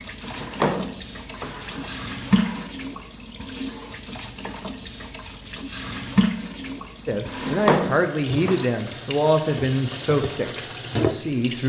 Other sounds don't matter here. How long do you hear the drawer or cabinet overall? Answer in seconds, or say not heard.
4 s.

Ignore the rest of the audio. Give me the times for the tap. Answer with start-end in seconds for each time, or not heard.
0.0-11.6.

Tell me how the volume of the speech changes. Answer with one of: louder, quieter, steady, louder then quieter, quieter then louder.
quieter.